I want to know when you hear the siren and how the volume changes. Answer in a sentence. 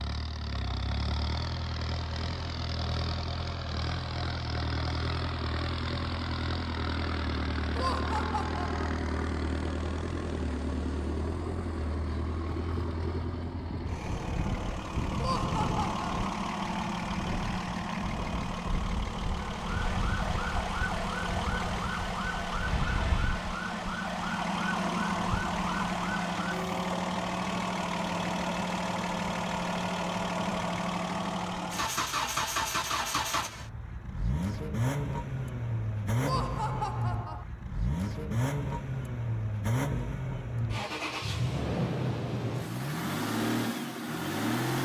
You can hear the siren from 19.5 to 26.9 s, at a steady volume.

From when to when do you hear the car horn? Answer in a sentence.
You can't hear the car horn here.